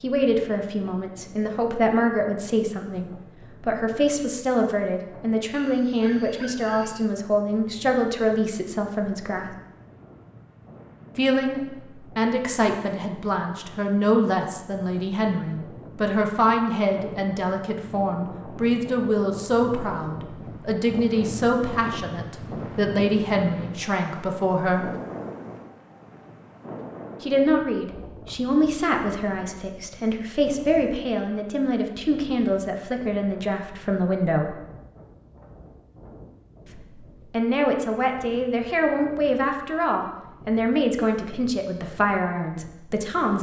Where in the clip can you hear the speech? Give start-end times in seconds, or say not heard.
0.0-9.4, 11.2-24.9, 27.2-34.5, 36.7-43.3.